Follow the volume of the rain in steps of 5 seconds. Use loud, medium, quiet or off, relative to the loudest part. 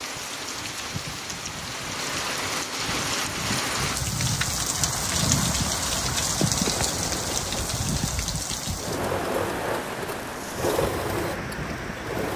loud, loud, medium.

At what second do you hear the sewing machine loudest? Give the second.
11 s.